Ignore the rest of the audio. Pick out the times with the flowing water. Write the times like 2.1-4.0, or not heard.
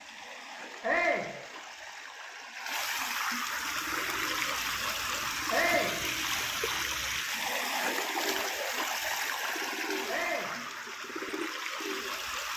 0.0-12.5.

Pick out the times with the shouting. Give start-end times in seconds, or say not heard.
0.8-1.3, 5.5-6.0, 10.1-10.5.